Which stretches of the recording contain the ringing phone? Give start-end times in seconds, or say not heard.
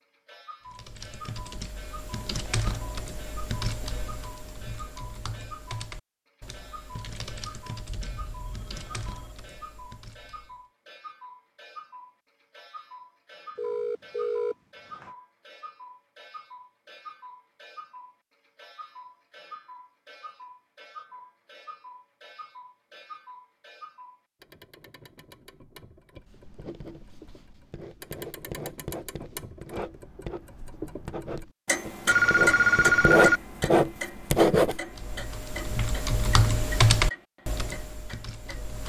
7.8-9.3, 13.6-15.1, 32.0-33.4.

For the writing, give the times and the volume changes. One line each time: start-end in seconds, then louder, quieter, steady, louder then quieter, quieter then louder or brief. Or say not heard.
26.1-34.8 louder.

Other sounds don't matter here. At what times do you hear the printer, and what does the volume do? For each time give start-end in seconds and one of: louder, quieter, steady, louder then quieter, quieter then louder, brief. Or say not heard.
not heard.